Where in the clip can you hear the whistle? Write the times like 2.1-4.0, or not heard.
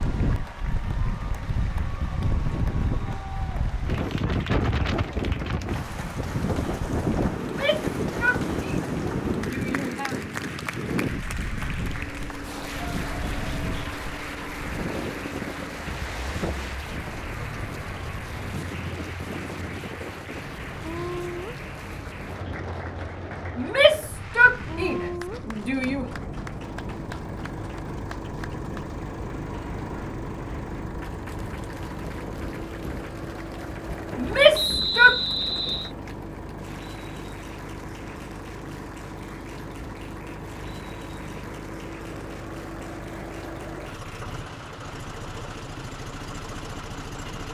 34.5-35.9.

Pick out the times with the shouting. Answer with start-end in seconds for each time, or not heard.
7.4-10.2, 23.6-26.1, 34.1-35.2.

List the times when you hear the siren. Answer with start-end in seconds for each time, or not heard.
not heard.